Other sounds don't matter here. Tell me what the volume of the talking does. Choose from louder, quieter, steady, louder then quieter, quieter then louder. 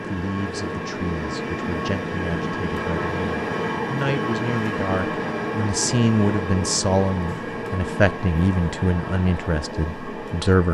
louder.